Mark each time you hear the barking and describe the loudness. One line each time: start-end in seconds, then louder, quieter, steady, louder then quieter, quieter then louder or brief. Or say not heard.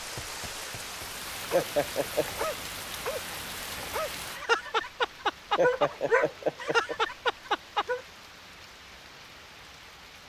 1.5-8.0 louder.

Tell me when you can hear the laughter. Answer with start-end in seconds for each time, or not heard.
1.5-2.5, 5.5-7.0.